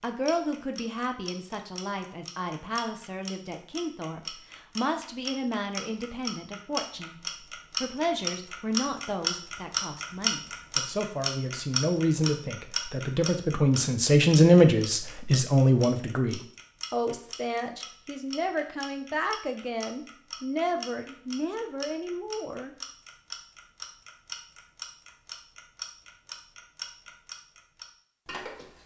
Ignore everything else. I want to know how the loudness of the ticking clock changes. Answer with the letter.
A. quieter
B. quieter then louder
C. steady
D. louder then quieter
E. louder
D.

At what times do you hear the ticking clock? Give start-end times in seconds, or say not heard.
0.0-28.8.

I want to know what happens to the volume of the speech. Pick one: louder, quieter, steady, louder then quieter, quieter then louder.
louder then quieter.